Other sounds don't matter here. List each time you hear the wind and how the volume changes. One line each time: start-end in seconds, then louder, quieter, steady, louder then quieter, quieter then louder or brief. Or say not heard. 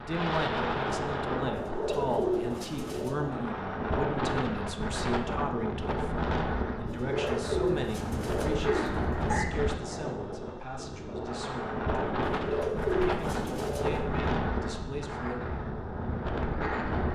0.0-17.1 steady.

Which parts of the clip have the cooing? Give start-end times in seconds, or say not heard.
1.5-3.2, 6.8-9.5, 12.2-14.1.